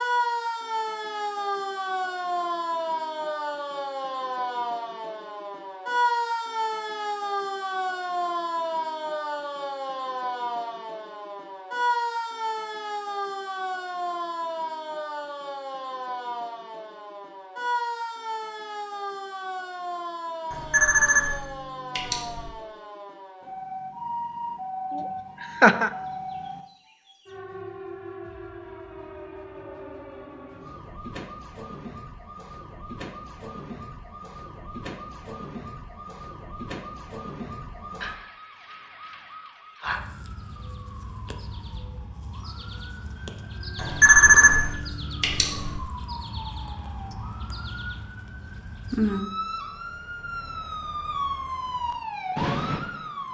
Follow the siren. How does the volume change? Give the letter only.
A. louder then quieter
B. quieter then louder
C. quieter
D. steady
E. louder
B.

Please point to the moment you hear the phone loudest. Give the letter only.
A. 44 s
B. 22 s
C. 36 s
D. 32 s
A.